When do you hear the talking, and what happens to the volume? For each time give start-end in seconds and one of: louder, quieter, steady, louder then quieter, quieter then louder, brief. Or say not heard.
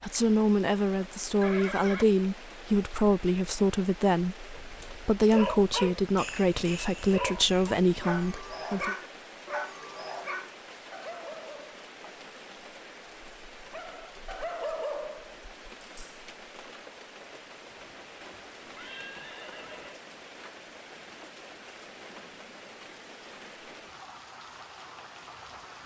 0.0-8.9 steady.